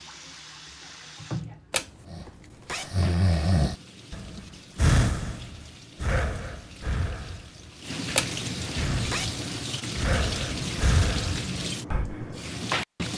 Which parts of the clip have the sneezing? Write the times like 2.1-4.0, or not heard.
not heard.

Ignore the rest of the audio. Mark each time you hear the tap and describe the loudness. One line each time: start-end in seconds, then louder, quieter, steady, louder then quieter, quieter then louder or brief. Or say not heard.
0.0-13.1 quieter then louder.